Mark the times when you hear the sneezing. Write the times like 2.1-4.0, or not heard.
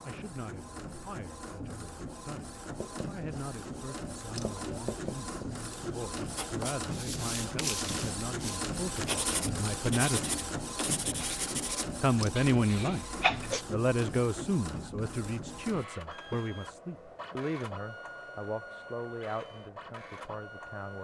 12.5-13.7.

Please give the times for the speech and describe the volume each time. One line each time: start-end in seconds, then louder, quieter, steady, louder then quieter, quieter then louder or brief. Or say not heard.
0.0-10.3 louder
12.0-13.1 brief
13.7-21.0 quieter.